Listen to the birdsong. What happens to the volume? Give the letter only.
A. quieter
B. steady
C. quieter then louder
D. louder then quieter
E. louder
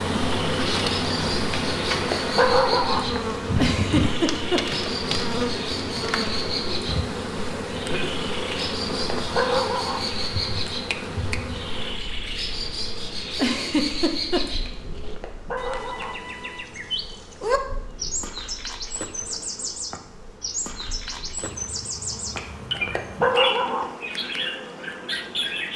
B.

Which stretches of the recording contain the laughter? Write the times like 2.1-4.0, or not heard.
3.5-4.6, 13.3-14.4.